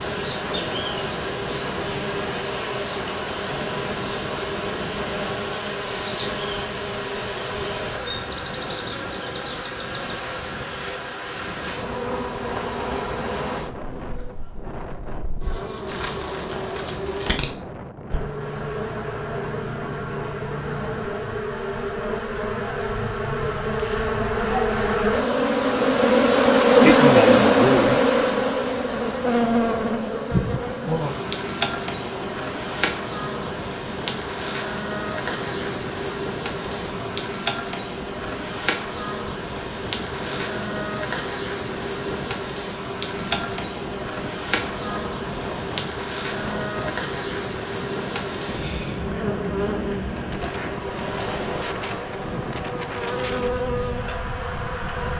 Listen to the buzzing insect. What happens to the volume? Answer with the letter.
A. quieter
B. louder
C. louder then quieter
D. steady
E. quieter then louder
C.